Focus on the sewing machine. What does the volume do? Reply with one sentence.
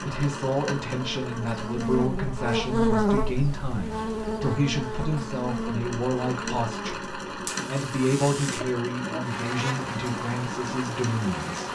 The volume of the sewing machine goes down, then up.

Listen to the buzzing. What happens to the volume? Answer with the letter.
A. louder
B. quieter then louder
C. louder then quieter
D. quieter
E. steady
D.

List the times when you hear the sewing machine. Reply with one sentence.
You can hear the sewing machine from 0.0 to 11.6 s.